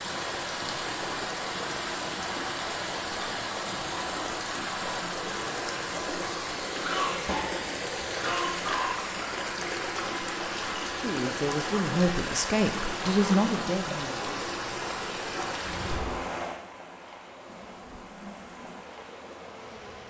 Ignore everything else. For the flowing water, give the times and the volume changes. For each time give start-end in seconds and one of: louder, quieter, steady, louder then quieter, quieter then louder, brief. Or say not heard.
0.0-20.0 quieter.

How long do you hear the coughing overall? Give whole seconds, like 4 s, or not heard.
2 s.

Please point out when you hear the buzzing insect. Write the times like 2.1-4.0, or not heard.
17.4-20.0.